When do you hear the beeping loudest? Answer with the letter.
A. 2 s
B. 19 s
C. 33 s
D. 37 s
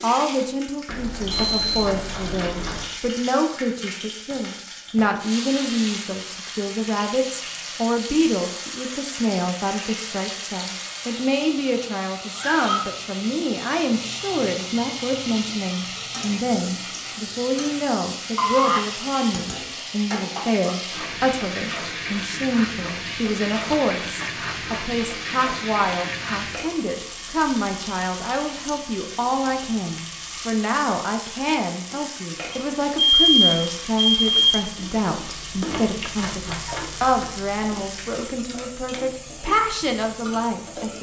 C.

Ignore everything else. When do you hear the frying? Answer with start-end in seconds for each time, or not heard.
0.0-40.9.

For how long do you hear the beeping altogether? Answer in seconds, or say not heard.
5 s.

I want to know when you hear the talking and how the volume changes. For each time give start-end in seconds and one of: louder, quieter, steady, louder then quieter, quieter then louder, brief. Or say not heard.
0.0-40.9 steady.